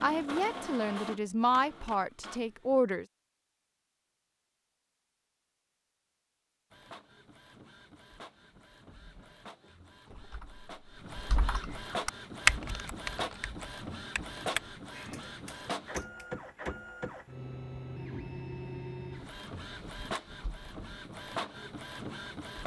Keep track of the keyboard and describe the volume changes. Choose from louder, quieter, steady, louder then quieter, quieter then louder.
louder then quieter.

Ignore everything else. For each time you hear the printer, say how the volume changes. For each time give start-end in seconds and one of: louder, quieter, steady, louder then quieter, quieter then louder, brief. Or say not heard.
0.0-2.9 brief
6.7-22.6 louder.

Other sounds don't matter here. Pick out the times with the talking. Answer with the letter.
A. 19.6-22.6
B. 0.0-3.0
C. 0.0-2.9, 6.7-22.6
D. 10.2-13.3
B.